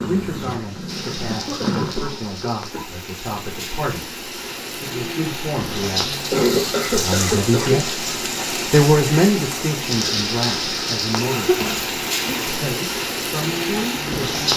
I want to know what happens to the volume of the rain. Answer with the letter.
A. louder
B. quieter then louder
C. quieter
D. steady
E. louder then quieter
A.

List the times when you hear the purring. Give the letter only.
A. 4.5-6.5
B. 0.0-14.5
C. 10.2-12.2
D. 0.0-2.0
D.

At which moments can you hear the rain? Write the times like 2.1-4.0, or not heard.
0.0-14.5.